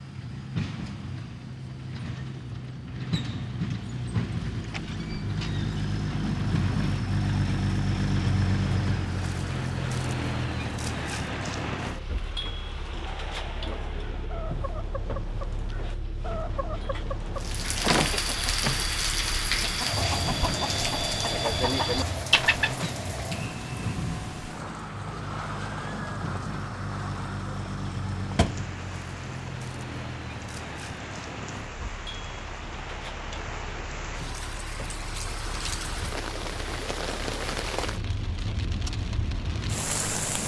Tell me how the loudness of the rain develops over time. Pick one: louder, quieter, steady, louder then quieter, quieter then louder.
quieter then louder.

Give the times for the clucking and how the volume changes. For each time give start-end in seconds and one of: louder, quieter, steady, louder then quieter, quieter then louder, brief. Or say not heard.
13.8-22.9 louder.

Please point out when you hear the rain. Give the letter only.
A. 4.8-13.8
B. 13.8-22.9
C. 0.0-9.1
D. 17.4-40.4
D.